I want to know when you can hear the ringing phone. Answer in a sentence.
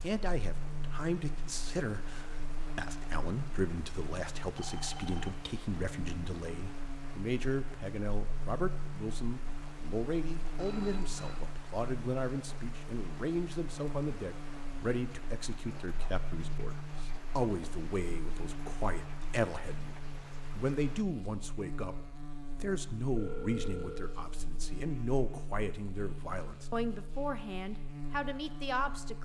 You can hear the ringing phone from 4.5 to 5.3 s, from 10.4 to 11.4 s and from 23.1 to 24.2 s.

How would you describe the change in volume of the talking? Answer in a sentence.
The loudness of the talking stays about the same.